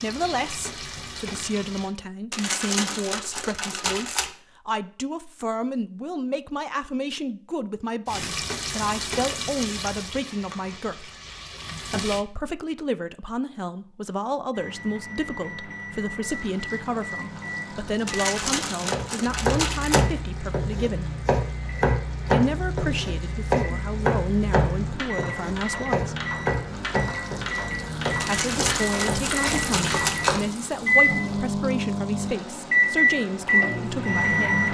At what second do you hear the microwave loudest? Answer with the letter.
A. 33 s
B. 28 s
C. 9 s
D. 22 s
A.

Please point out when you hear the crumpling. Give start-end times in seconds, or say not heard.
2.3-4.3, 18.1-20.1, 28.2-30.2.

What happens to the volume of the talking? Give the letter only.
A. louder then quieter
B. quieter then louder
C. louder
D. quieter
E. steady
E.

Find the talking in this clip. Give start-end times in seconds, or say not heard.
0.0-11.2, 11.9-21.1, 22.3-26.1, 28.2-34.7.